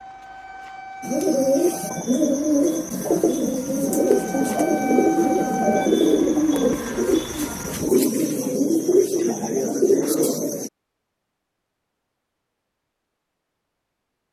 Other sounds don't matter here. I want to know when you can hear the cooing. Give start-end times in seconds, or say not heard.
1.0-10.7.